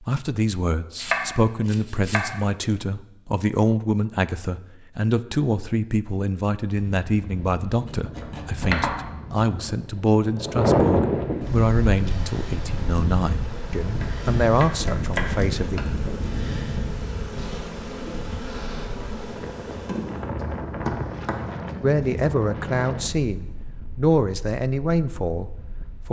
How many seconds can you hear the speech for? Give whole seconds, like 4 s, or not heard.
20 s.